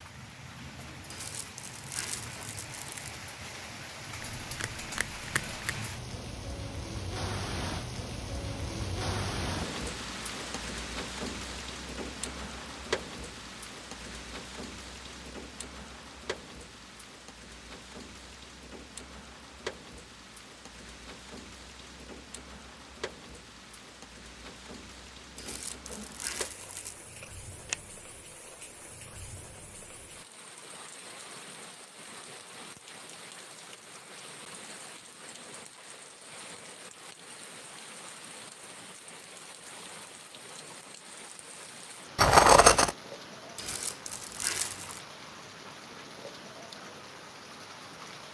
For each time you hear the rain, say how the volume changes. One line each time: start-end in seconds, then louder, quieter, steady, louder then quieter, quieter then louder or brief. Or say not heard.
0.0-48.3 quieter.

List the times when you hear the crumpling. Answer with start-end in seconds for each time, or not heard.
1.1-3.1, 25.4-27.1, 43.5-45.0.